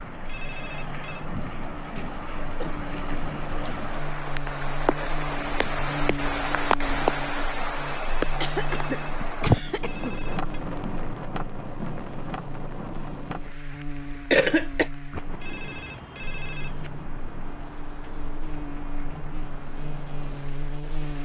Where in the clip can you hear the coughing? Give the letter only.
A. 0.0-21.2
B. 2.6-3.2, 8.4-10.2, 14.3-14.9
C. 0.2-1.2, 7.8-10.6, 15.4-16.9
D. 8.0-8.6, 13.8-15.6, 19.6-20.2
B.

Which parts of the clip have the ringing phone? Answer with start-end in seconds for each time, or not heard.
0.2-1.2, 7.8-10.6, 15.4-16.9.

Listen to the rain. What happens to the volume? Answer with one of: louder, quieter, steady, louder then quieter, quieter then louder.
louder then quieter.